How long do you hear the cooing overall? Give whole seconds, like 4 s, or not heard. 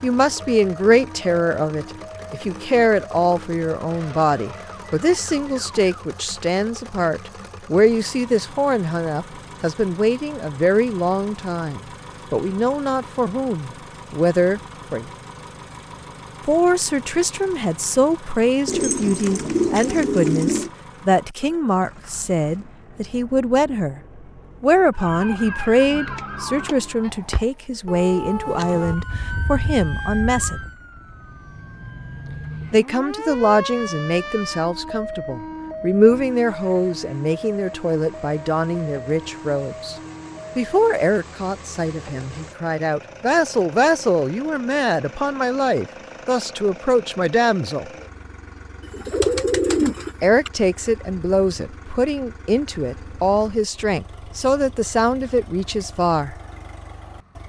4 s.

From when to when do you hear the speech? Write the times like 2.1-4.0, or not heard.
0.0-15.1, 16.4-24.0, 24.6-30.6, 32.7-40.0, 40.5-47.9, 50.2-56.4.